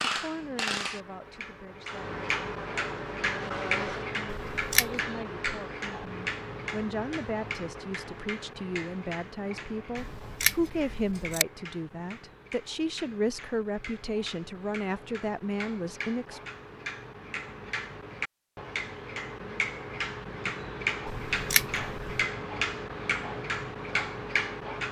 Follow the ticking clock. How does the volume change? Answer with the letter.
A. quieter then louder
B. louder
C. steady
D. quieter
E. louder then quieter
A.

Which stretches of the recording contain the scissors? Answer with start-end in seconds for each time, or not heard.
4.3-4.9, 9.9-11.4, 21.1-22.2.